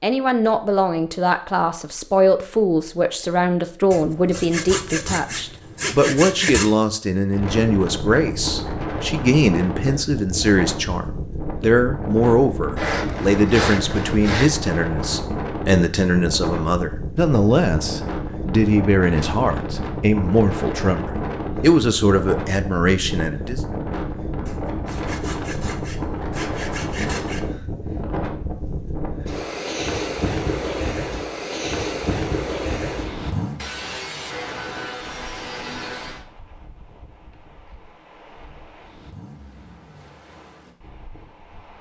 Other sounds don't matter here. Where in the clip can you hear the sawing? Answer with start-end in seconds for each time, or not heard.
3.9-6.8, 12.8-14.5, 24.4-27.4, 33.5-36.2.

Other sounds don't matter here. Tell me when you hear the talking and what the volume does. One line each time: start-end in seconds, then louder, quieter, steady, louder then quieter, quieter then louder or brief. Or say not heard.
0.0-23.6 steady.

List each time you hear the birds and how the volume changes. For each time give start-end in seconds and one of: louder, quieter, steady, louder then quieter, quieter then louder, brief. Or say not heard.
not heard.